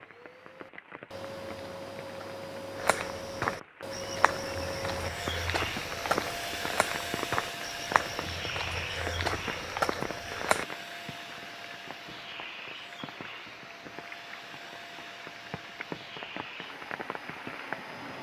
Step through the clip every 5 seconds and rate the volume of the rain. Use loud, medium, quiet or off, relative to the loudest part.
medium, loud, loud, loud.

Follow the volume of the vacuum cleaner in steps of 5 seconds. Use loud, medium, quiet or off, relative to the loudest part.
loud, loud, medium, medium.